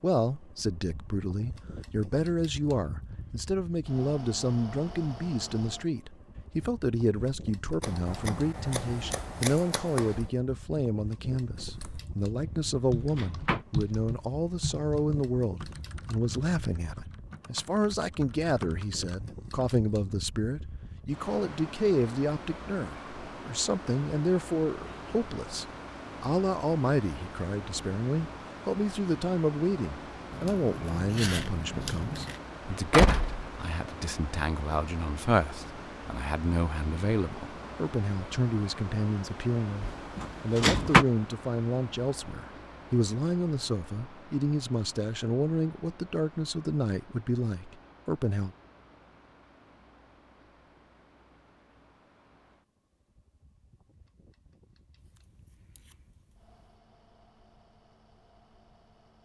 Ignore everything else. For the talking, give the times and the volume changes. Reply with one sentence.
The talking can be heard from 0.0 to 48.5 s, at a steady volume.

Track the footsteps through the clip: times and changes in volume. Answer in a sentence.
The footsteps can't be heard in this clip.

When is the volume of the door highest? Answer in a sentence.
The loudest moment of the door is at 41 seconds.